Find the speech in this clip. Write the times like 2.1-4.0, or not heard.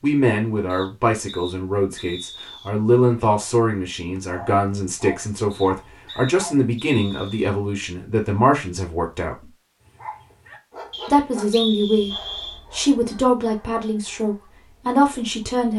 0.0-9.5, 11.1-15.7.